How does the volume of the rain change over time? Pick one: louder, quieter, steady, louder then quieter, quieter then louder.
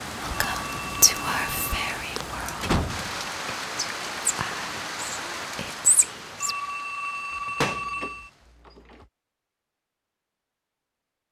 quieter.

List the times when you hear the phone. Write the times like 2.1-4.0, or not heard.
0.3-1.9, 6.4-8.3.